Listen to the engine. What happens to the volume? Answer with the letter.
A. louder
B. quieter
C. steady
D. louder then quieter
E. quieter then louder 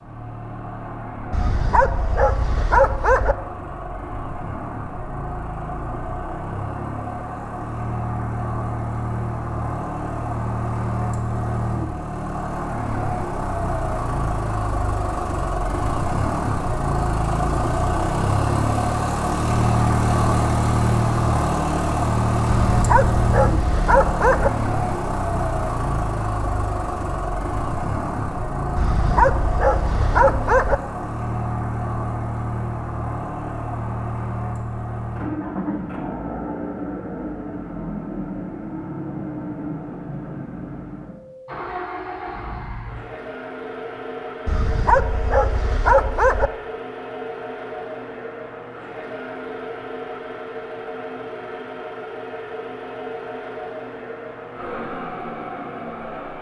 D.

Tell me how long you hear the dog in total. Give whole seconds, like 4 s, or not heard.
8 s.